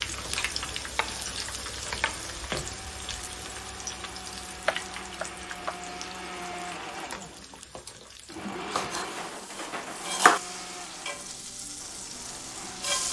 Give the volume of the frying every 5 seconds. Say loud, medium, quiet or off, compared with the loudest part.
loud, medium, loud.